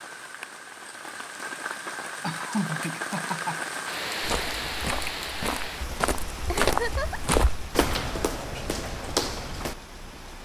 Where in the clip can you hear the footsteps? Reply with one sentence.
The footsteps can be heard from 4.2 to 9.8 s.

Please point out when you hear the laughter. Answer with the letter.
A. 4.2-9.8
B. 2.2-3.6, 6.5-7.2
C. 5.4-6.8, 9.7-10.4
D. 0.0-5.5
B.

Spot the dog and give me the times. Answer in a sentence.
The dog can't be heard in this clip.